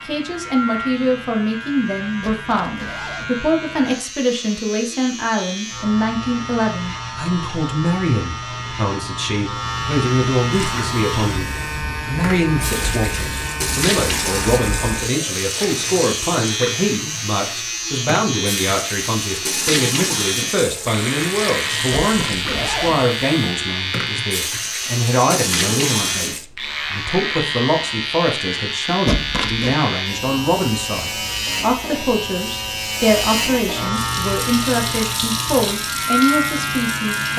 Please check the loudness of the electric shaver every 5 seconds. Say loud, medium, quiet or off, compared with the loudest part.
medium, medium, loud, loud, loud, loud, loud, loud.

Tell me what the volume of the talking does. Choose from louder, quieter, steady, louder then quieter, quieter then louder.
steady.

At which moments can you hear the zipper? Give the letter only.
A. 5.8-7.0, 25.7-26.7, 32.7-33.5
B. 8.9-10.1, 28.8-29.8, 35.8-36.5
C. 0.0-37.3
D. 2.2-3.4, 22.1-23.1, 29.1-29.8
D.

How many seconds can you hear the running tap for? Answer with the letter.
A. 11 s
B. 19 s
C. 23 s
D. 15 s
B.